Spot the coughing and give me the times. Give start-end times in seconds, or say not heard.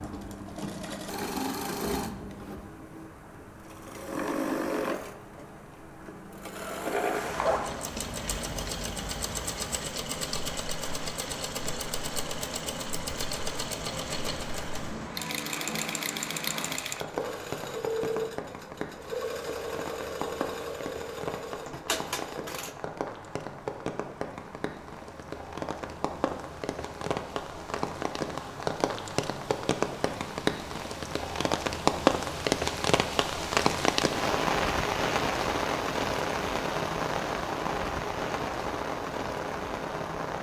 not heard.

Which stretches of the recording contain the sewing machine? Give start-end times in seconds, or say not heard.
0.0-22.8.